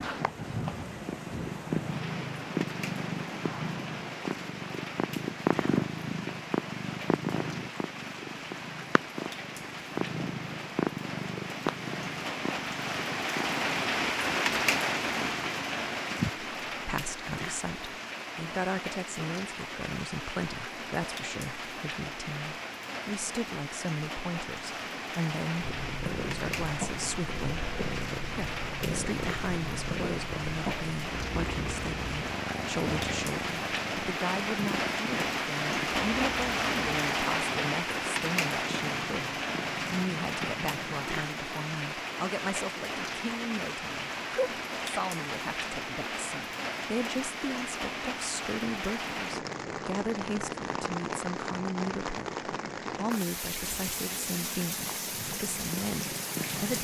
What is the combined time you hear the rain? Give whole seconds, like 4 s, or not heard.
57 s.